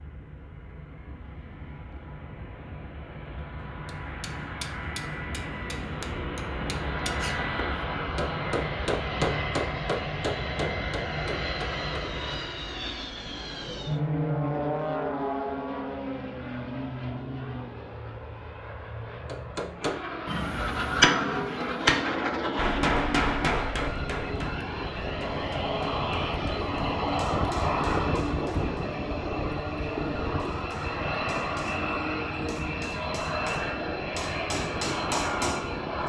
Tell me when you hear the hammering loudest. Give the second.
21 s.